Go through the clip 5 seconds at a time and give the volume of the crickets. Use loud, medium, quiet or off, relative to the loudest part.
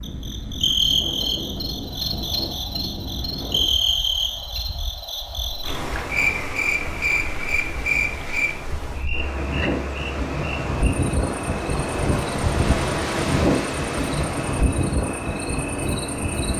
loud, loud, medium, medium.